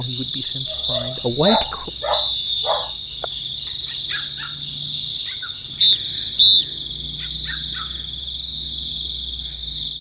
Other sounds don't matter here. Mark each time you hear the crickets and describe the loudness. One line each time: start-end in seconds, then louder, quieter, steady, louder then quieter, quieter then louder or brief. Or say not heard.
0.0-9.9 steady.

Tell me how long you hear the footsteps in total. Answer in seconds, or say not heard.
not heard.